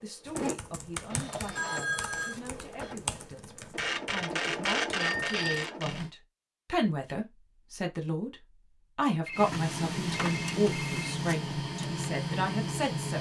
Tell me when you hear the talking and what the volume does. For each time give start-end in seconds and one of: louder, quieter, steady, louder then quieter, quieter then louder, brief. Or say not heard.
0.0-13.1 louder.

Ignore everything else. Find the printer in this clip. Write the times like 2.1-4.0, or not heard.
0.0-6.1, 9.3-13.1.